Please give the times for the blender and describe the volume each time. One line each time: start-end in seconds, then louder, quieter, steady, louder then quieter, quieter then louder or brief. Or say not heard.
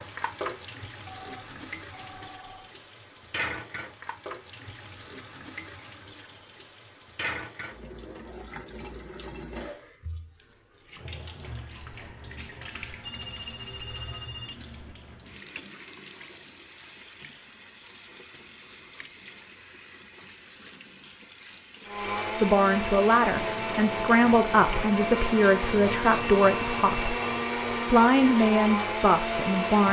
21.8-29.8 steady.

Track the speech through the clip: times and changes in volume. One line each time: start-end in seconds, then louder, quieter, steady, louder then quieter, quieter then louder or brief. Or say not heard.
22.4-27.1 steady
27.9-29.8 brief.